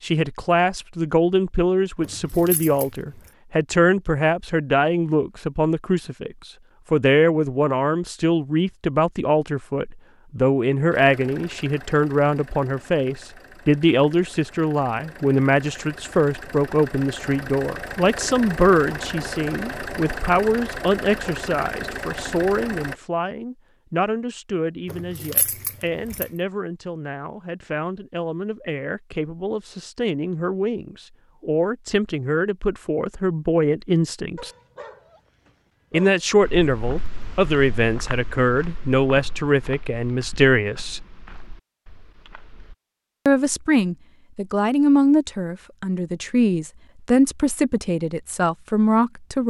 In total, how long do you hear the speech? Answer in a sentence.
You can hear the speech for 46 seconds altogether.